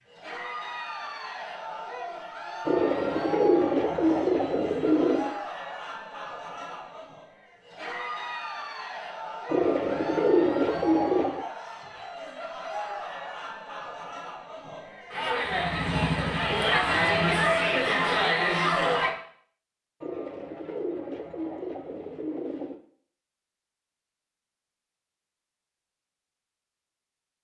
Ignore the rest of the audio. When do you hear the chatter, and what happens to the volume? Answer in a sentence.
You can hear the chatter from 0.1 to 19.1 s, getting louder.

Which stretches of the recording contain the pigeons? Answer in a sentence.
The pigeons can be heard from 2.6 to 5.3 s, from 9.4 to 11.4 s and from 20.0 to 22.8 s.